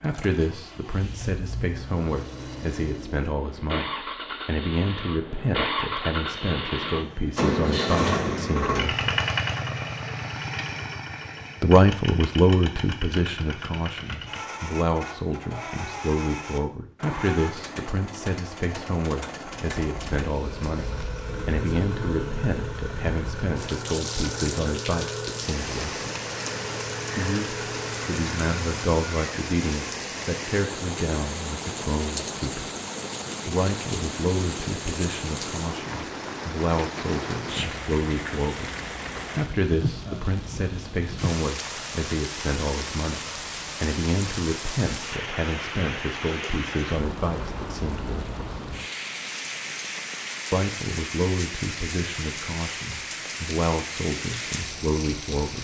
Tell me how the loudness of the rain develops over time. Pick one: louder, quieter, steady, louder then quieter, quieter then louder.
steady.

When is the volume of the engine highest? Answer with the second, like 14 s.
8 s.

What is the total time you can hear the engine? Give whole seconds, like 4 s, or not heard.
29 s.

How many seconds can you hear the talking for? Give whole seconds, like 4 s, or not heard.
49 s.